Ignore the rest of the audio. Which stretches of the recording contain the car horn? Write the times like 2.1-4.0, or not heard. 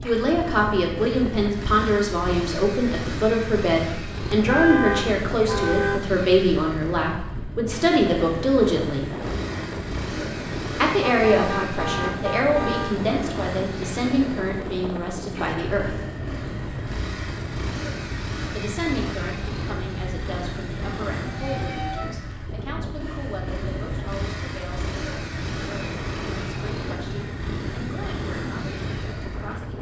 4.3-6.0, 11.2-12.9, 21.2-22.3.